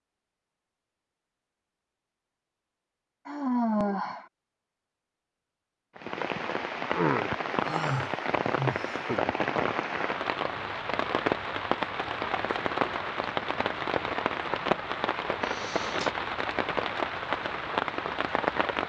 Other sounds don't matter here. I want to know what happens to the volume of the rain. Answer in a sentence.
The volume of the rain stays about the same.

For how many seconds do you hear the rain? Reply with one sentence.
The rain can be heard for 13 seconds in total.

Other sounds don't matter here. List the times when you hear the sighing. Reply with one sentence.
You can hear the sighing from 3.2 to 4.2 s, from 7.6 to 9.1 s and from 15.4 to 16.1 s.